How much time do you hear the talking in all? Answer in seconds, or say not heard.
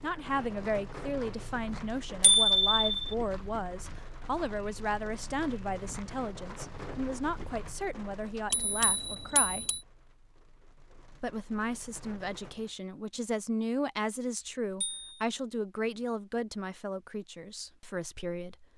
17 s.